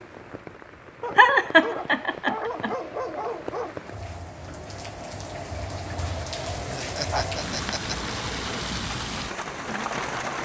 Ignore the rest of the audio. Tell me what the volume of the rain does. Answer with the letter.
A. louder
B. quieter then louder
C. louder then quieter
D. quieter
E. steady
A.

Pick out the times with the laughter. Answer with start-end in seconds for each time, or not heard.
1.1-2.8, 6.7-8.2.